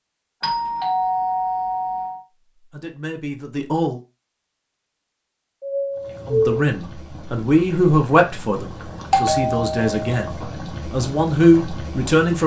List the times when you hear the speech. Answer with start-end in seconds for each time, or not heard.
2.7-4.0, 6.2-12.4.